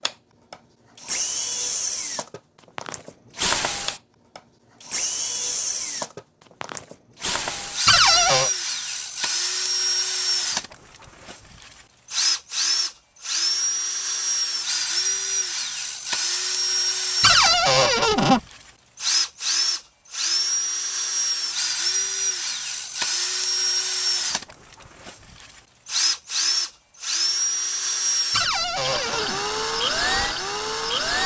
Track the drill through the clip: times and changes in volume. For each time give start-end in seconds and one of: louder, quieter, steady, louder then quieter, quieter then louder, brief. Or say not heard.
0.0-31.2 steady.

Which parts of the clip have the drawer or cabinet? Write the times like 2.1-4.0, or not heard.
7.8-8.5, 17.2-18.4, 28.3-29.4.